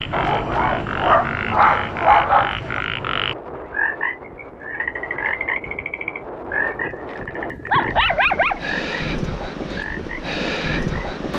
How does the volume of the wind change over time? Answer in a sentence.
The loudness of the wind goes up.